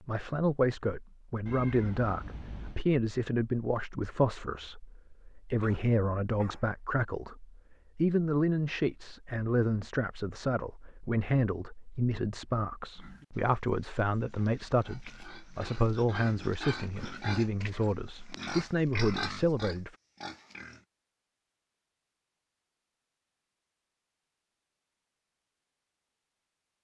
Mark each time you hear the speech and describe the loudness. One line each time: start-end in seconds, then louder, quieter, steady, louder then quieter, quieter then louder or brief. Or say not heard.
0.1-19.9 steady.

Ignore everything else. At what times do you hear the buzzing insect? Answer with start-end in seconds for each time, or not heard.
not heard.